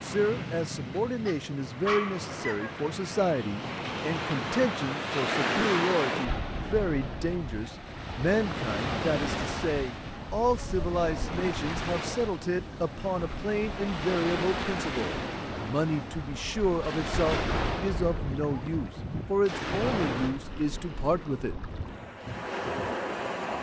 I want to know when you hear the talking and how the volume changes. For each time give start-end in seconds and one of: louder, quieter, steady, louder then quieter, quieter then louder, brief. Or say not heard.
0.0-21.6 steady.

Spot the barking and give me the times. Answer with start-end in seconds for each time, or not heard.
1.2-2.8.